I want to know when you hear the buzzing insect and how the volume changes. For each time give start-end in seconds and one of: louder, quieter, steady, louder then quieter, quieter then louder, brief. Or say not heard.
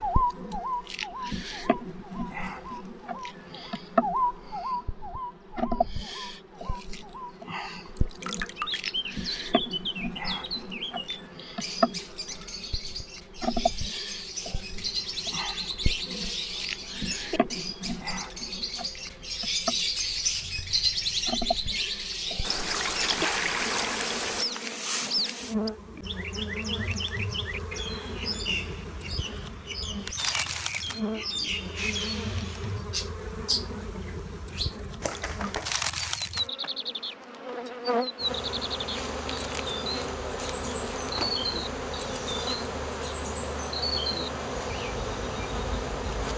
0.0-46.3 steady.